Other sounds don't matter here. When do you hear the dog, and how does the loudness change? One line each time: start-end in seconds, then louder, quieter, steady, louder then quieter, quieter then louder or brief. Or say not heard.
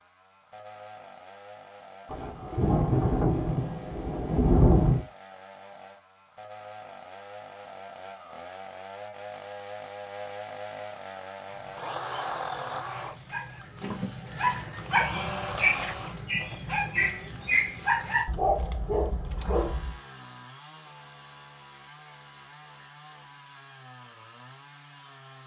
11.4-19.9 louder.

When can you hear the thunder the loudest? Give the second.
5 s.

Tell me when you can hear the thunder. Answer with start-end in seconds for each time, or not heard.
2.1-5.0.